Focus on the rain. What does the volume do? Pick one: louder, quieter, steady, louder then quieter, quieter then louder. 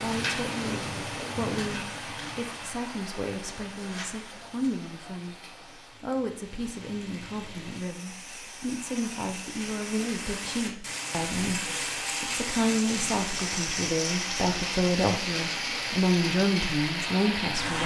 quieter then louder.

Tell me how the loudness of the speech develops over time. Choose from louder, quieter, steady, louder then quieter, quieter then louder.
louder.